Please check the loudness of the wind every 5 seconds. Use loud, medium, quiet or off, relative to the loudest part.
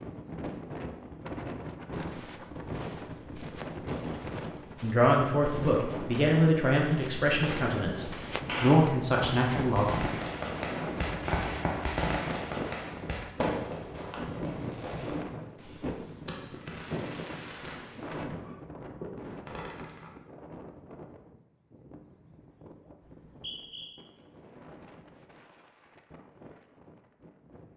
loud, loud, loud, loud, quiet, quiet.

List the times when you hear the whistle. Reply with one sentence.
The whistle can be heard from 23.0 to 23.9 s.